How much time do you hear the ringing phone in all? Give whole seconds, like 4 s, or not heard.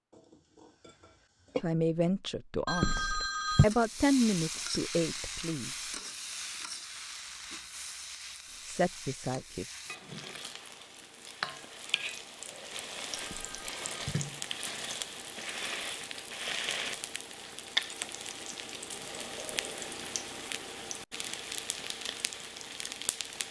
2 s.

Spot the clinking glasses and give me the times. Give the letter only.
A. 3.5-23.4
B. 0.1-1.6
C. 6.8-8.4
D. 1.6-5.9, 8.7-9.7
B.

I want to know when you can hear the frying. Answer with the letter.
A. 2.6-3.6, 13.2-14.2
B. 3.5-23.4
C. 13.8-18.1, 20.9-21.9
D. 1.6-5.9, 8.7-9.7
B.